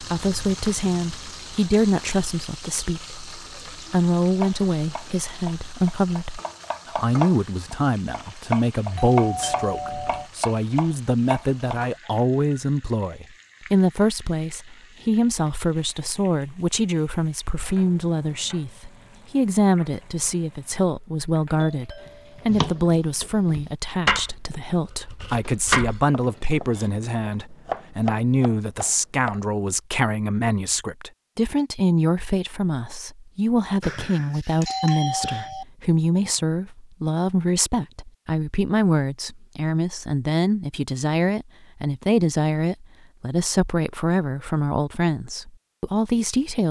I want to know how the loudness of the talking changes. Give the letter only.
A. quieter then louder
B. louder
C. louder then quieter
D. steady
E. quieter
D.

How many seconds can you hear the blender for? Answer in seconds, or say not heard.
not heard.